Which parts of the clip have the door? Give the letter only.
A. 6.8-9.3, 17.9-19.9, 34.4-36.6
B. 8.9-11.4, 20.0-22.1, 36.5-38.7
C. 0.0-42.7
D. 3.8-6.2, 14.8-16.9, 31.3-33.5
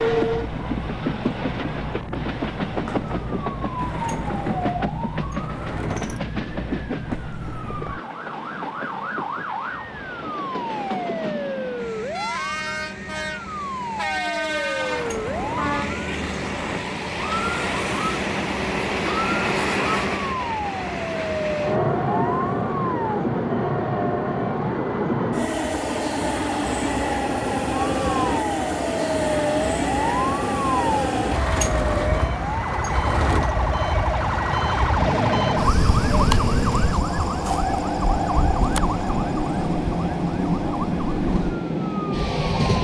D.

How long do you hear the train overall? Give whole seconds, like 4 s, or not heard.
43 s.